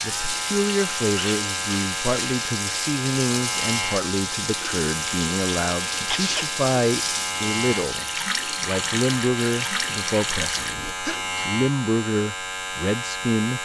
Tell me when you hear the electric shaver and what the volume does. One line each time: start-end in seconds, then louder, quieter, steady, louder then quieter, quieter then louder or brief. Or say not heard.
0.0-13.6 steady.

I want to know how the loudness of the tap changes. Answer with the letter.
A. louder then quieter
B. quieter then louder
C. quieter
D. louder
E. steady
E.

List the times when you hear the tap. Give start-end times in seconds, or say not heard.
0.0-10.9.